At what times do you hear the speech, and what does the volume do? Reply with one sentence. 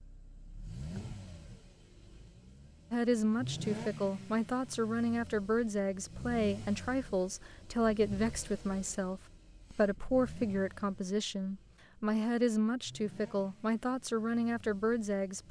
The speech can be heard from 2.9 to 15.4 s, at a steady volume.